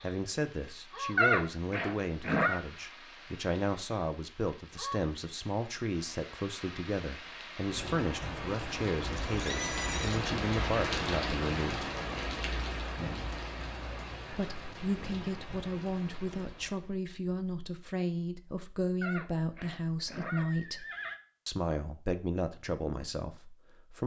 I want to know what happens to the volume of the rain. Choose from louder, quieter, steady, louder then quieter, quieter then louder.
louder then quieter.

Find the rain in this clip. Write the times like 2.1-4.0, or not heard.
0.0-16.9.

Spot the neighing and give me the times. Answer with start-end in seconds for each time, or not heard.
1.1-2.6, 9.2-10.2, 19.0-21.2.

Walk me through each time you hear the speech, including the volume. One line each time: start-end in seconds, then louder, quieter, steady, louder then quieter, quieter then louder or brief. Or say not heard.
0.0-11.9 steady
14.3-20.9 steady
21.4-24.0 brief.